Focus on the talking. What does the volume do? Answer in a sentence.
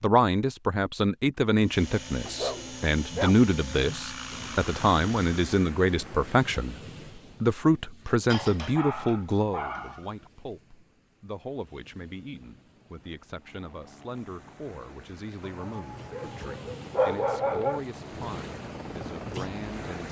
The loudness of the talking goes down.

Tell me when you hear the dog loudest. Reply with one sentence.
The loudest moment of the dog is at 17 seconds.